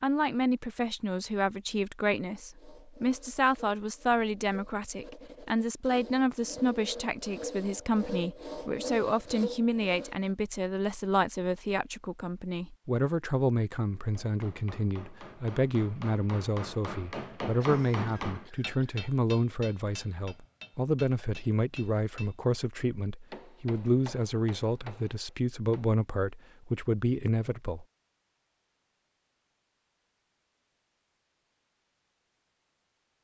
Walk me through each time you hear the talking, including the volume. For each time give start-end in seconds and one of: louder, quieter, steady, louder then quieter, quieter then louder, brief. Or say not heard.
0.0-27.9 steady.